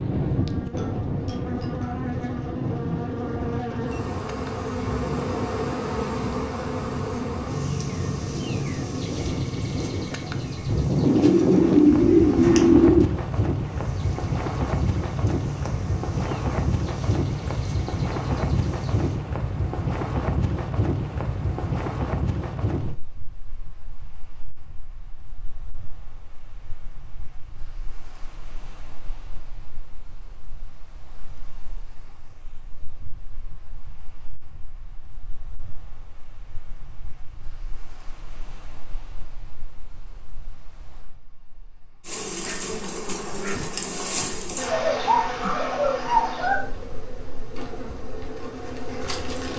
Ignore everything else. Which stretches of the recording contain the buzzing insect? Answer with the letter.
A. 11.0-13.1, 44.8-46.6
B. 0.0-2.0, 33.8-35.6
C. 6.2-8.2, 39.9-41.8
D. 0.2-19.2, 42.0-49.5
D.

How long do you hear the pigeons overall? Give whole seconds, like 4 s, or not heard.
4 s.